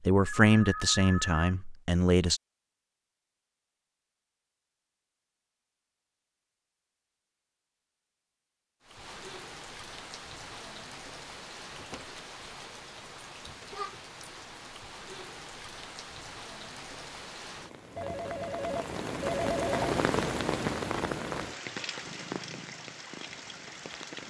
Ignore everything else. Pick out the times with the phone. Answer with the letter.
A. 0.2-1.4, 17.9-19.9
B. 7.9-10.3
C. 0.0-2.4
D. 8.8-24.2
A.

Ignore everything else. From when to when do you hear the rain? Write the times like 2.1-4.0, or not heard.
8.8-24.2.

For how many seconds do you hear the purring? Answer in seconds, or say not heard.
2 s.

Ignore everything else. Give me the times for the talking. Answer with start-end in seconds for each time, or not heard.
0.0-2.4.